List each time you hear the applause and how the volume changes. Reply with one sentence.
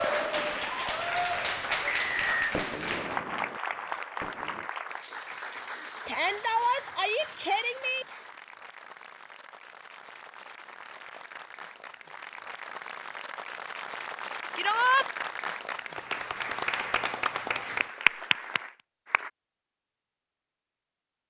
You can hear the applause from 0.0 to 19.3 s, getting quieter then louder.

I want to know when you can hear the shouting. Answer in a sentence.
You can hear the shouting from 6.0 to 8.1 s and from 14.6 to 15.1 s.